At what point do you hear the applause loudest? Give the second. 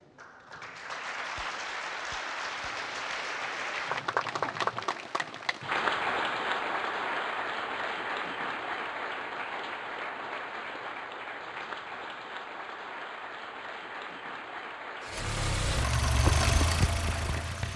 6 s.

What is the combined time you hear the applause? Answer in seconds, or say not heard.
18 s.